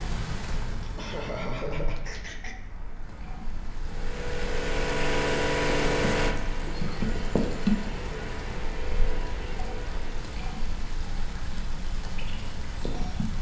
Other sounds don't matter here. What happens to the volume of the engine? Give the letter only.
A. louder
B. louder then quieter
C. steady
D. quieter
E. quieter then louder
D.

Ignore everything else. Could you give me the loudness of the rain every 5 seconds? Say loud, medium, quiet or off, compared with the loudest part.
medium, loud, medium.